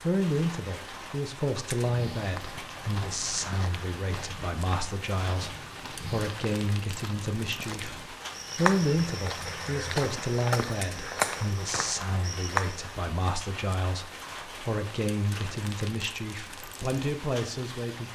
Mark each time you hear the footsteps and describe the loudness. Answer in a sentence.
You can hear the footsteps from 1.9 to 12.9 s, getting louder.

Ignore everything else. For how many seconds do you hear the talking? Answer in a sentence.
The talking can be heard for 18 seconds in total.